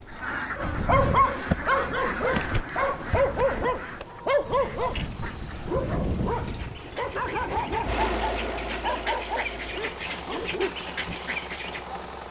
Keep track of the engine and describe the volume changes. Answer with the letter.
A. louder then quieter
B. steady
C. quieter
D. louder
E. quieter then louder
A.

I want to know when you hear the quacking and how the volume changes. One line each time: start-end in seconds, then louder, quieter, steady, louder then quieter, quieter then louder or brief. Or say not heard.
0.1-11.8 quieter then louder.